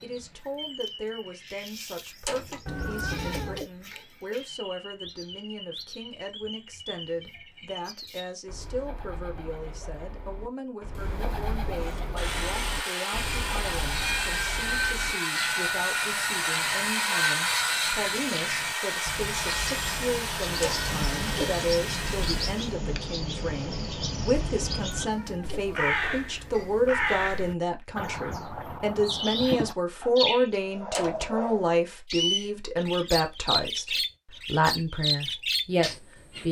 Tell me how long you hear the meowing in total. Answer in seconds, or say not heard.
3 s.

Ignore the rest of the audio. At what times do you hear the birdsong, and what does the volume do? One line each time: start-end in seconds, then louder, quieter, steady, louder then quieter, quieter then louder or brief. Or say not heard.
0.0-36.4 louder.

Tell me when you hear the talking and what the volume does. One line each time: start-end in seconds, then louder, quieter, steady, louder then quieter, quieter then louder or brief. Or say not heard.
0.0-36.4 louder.